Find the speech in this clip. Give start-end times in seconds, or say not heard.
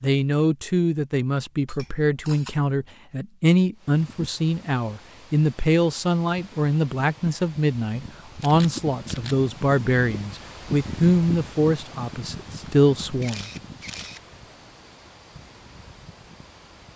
0.0-13.4.